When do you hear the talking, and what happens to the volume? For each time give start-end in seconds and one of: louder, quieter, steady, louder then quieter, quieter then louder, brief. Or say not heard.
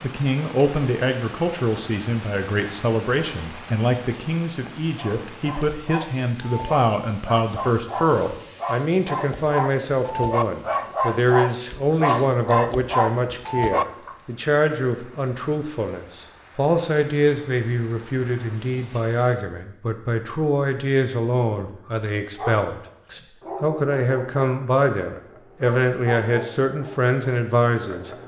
0.0-28.1 steady.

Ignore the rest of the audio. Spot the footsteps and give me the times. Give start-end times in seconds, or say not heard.
not heard.